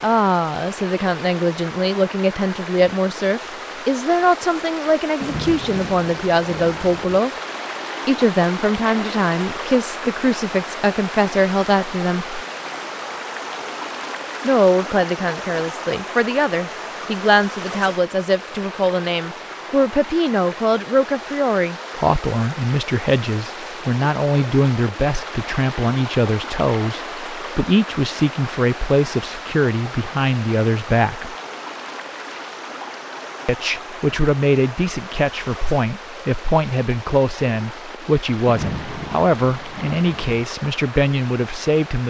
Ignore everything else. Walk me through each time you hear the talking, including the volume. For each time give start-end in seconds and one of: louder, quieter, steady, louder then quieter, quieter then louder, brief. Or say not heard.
0.0-7.3 steady
8.1-12.4 steady
14.4-31.4 steady
33.5-42.0 steady.